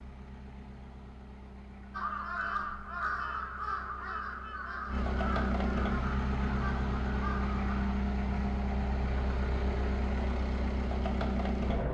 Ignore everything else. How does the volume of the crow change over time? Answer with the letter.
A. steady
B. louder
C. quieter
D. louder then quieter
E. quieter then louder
C.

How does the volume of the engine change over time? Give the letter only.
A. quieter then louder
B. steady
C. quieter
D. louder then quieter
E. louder
E.